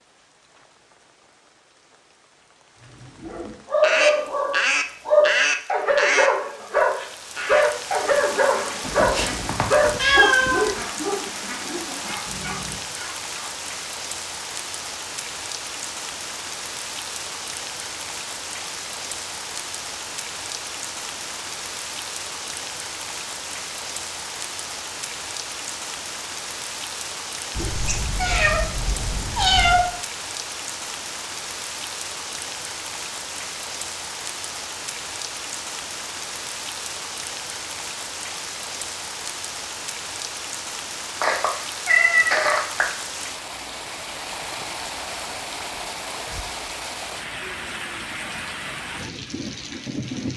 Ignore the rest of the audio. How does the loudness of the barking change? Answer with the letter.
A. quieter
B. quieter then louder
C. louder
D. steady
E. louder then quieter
A.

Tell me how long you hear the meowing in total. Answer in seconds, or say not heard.
6 s.